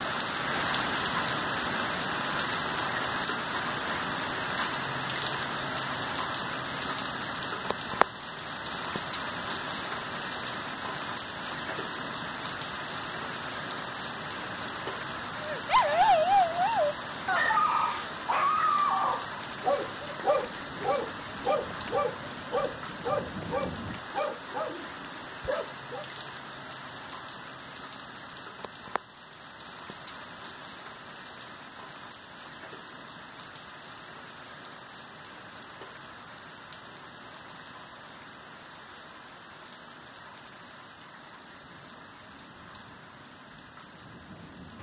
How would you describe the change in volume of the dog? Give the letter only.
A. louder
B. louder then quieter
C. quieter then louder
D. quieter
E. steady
D.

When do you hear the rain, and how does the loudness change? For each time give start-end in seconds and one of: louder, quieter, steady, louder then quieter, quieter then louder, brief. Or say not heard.
0.0-44.7 quieter.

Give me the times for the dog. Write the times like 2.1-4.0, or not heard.
15.4-26.1.